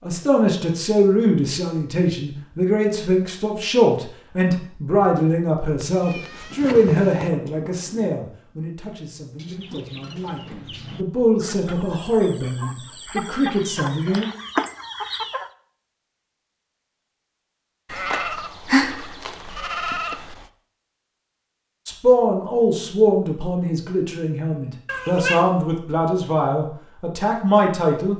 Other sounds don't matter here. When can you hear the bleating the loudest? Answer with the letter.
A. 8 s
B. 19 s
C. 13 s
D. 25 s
B.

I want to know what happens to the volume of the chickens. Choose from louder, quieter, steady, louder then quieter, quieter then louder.
louder.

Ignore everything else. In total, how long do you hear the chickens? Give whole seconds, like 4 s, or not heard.
6 s.